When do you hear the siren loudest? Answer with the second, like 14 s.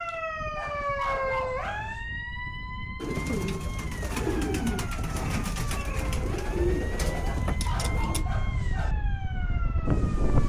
1 s.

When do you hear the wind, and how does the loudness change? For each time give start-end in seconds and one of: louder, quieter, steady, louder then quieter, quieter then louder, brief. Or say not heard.
0.0-10.4 louder.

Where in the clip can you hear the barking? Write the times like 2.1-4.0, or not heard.
0.6-2.0, 7.2-8.9.